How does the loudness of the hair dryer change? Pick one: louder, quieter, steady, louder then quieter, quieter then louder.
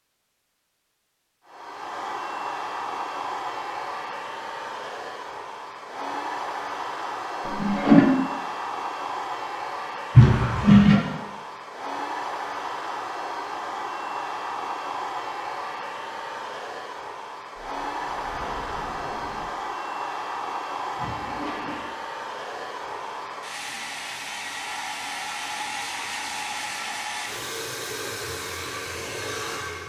steady.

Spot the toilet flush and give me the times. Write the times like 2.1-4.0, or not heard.
7.5-8.1, 10.2-11.0, 20.9-21.9.